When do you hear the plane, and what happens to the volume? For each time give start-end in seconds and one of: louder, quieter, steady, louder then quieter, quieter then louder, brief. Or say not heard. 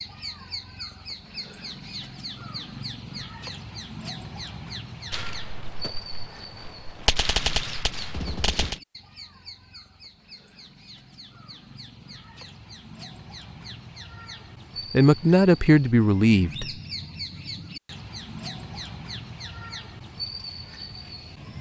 not heard.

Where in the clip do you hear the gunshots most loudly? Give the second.
7 s.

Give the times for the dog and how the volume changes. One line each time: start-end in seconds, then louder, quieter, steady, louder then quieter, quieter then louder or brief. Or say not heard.
not heard.